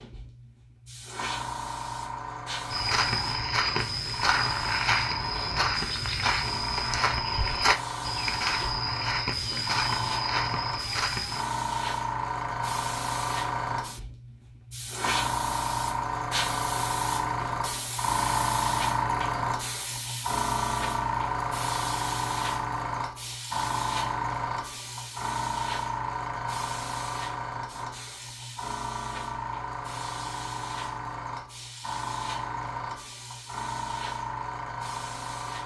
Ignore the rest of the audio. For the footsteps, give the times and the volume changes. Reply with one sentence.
You can hear the footsteps from 2.7 to 11.4 s, at a steady volume.